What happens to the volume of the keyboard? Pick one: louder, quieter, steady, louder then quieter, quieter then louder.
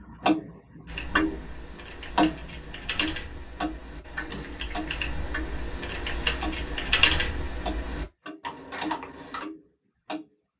louder then quieter.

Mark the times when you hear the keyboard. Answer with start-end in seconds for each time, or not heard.
0.8-9.4.